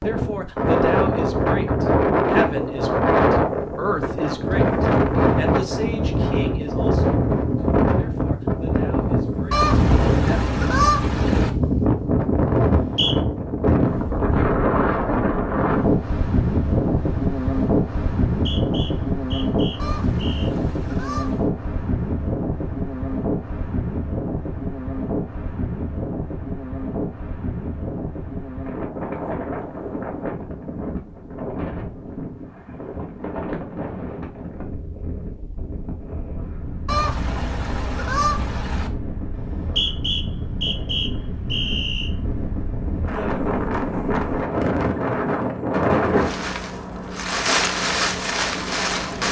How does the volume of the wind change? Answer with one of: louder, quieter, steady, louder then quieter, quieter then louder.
quieter then louder.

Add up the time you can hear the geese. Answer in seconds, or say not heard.
6 s.